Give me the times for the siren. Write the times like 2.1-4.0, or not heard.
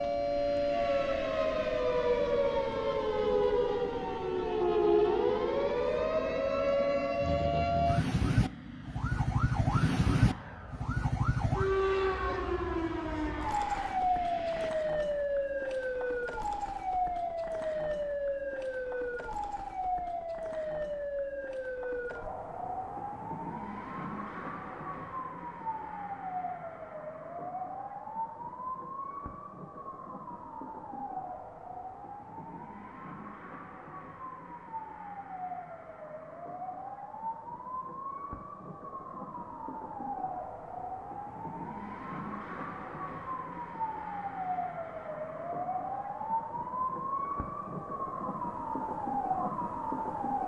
0.0-50.4.